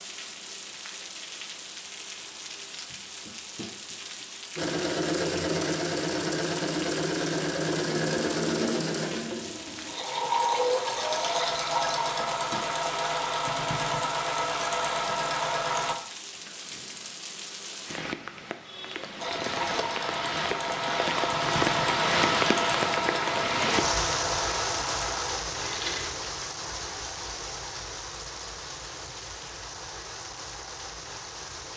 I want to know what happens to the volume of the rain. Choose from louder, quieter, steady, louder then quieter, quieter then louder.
louder then quieter.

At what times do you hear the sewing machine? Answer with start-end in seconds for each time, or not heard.
4.5-15.9, 19.2-26.1.